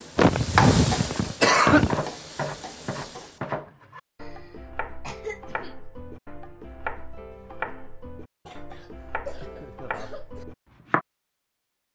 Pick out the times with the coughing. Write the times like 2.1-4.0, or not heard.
0.1-2.0, 4.2-5.8, 8.4-10.4.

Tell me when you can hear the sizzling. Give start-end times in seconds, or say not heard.
0.0-3.5.